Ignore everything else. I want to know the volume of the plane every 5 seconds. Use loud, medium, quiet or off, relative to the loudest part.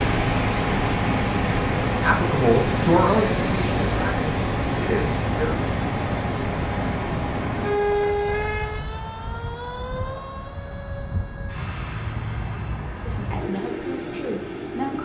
loud, loud, medium.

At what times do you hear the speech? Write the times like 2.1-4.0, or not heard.
1.9-5.5, 13.1-15.0.